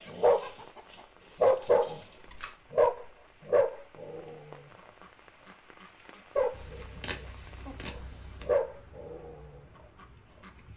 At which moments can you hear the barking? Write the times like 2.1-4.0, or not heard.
0.1-0.8, 1.4-2.0, 2.7-4.7, 5.5-10.7.